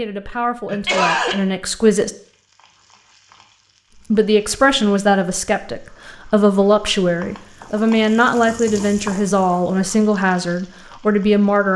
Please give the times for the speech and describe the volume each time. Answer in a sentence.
The speech can be heard briefly from 0.0 to 2.1 s; and from 4.1 to 11.7 s, at a steady volume.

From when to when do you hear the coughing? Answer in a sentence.
The coughing can be heard from 0.7 to 1.4 s.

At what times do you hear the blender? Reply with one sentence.
You can't hear the blender here.